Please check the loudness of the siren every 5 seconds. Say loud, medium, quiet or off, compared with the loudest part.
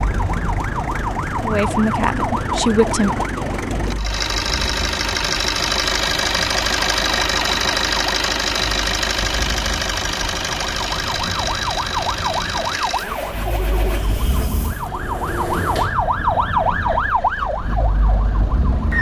medium, quiet, medium, loud.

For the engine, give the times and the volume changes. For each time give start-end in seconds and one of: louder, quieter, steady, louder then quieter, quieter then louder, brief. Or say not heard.
0.0-18.9 louder then quieter.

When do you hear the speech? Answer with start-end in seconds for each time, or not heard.
1.4-3.3.